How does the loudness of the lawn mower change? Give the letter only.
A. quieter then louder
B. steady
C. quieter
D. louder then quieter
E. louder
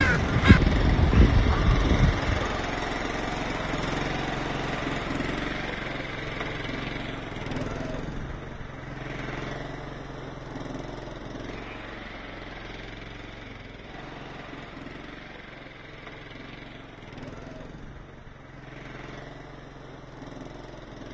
C.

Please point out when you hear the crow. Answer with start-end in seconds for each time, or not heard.
0.0-2.6.